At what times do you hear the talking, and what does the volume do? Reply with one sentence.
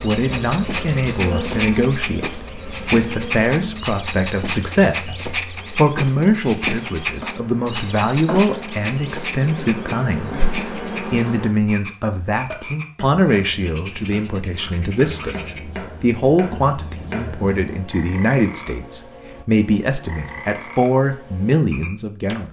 The talking can be heard from 0.0 to 5.1 s, at a steady volume; and from 5.8 to 22.4 s, at a steady volume.